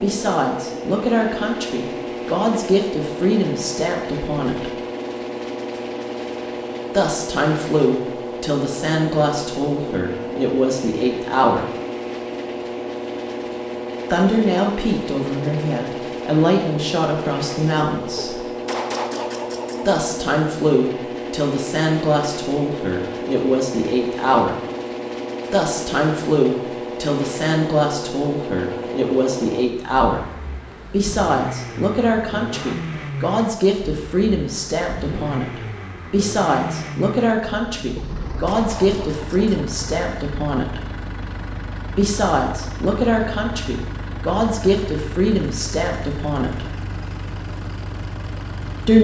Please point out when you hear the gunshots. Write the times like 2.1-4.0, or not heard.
18.1-20.0, 38.0-39.7.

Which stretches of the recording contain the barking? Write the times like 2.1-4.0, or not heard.
not heard.